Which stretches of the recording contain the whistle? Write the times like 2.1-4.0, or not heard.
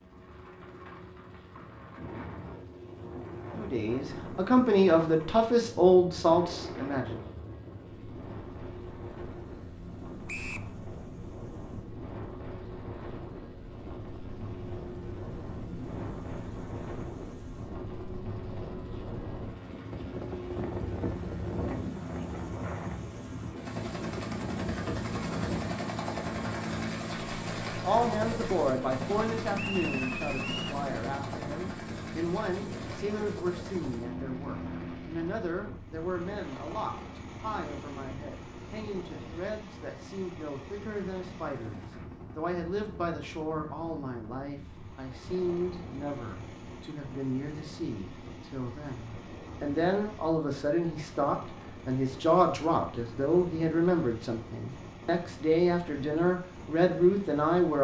10.2-10.7, 29.6-30.8.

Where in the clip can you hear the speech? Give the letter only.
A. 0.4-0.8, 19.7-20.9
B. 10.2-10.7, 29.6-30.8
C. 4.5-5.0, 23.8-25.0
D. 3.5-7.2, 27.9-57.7
D.